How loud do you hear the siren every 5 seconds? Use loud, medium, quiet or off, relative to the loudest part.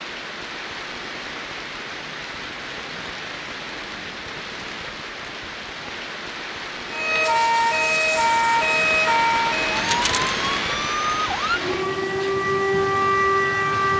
off, loud, loud.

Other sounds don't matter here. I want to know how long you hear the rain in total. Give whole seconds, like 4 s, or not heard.
14 s.